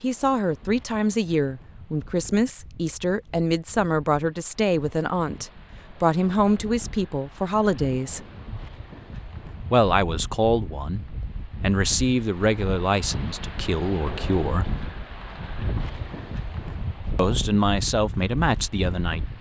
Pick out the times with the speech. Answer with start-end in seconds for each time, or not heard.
0.0-8.2, 9.7-14.8, 17.1-19.2.